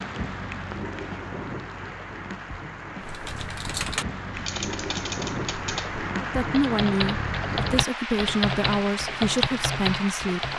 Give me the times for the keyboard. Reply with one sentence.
The keyboard can be heard from 3.0 to 10.5 s.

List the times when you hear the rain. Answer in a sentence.
You can hear the rain from 0.0 to 10.5 s.